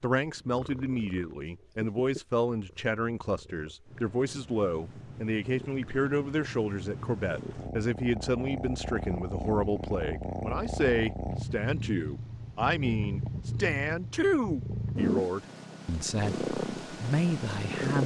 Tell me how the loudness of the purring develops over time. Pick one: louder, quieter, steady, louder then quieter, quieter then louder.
louder.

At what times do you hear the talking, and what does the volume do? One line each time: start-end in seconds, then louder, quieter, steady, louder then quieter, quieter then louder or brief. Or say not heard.
0.0-18.0 steady.